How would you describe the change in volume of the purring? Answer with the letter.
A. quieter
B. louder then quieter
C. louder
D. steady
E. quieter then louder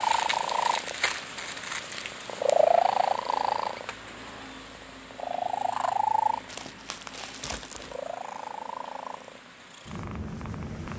B.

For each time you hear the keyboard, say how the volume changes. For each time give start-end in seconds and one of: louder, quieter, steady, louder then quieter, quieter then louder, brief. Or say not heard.
not heard.